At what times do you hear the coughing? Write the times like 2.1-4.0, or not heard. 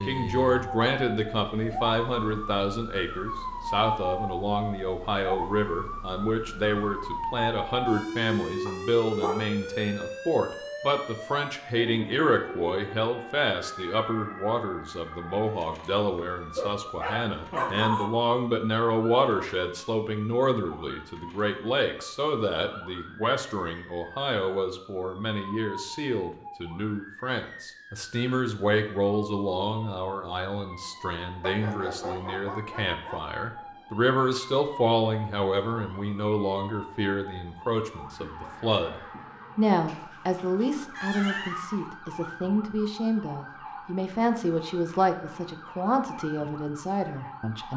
not heard.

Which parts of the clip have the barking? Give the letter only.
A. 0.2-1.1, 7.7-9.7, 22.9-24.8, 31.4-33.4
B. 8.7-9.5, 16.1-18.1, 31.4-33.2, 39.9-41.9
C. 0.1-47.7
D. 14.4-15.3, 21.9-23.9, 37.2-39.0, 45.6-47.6
B.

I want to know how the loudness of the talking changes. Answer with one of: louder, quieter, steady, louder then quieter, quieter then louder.
steady.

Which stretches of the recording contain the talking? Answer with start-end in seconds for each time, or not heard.
0.1-47.7.